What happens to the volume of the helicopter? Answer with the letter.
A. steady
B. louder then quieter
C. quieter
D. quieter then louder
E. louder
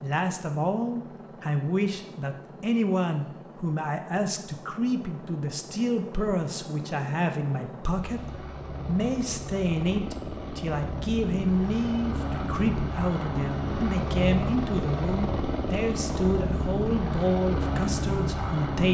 E.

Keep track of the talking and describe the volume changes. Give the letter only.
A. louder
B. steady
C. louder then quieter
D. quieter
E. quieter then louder
B.